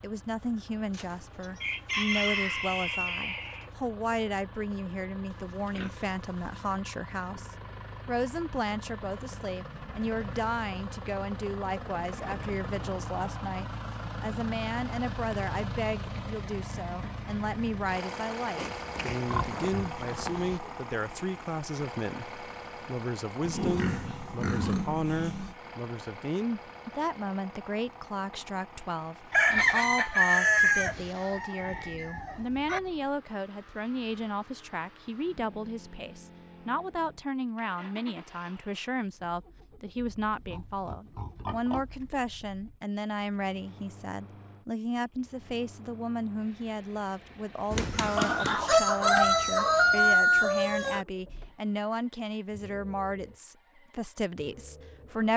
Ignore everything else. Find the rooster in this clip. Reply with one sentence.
You can hear the rooster from 0.9 to 3.7 s, from 29.3 to 32.8 s and from 47.7 to 51.0 s.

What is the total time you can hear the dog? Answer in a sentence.
The dog can't be heard in this clip.